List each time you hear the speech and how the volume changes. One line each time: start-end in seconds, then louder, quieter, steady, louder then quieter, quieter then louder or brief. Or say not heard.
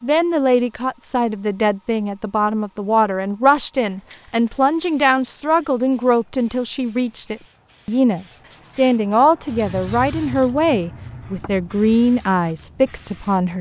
0.0-13.5 steady.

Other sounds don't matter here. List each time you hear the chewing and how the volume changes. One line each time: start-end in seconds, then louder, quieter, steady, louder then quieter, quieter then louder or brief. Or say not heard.
not heard.